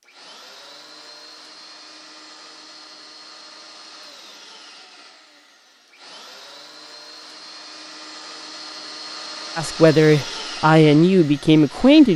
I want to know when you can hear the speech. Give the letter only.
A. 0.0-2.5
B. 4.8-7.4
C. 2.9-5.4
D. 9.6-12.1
D.